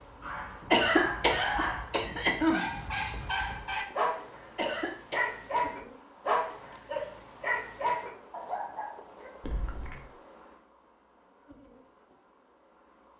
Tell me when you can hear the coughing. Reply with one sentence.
You can hear the coughing from 0.7 to 2.6 s, from 4.5 to 5.3 s and from 9.4 to 10.1 s.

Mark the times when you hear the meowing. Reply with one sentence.
The meowing can't be heard in this clip.